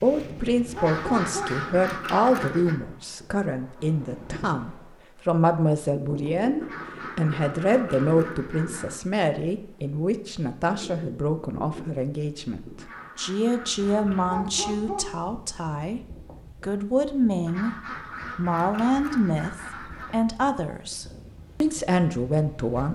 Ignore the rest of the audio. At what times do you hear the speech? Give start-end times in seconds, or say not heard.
0.0-16.0, 16.6-17.8, 18.4-22.8.